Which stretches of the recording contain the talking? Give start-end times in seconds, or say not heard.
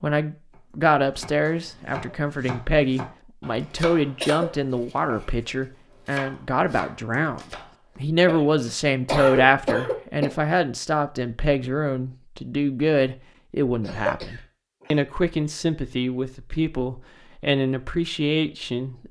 0.0-19.0.